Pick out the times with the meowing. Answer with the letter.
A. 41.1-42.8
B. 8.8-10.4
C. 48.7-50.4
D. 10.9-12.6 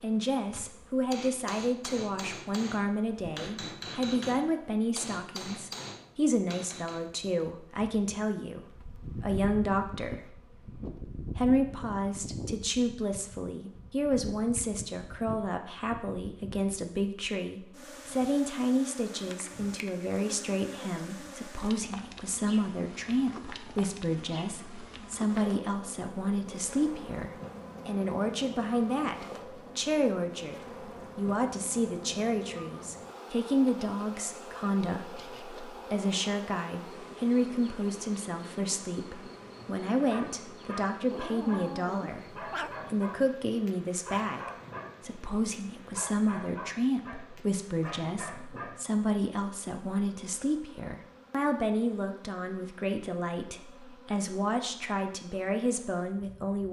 A.